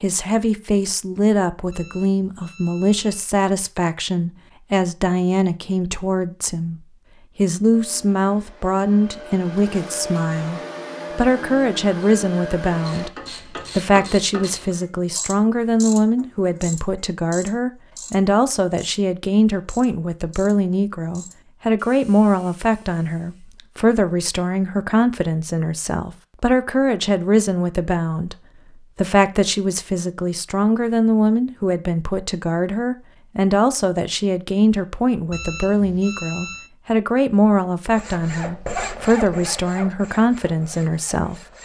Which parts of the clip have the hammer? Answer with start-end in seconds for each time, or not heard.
not heard.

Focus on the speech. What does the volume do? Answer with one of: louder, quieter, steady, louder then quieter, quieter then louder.
steady.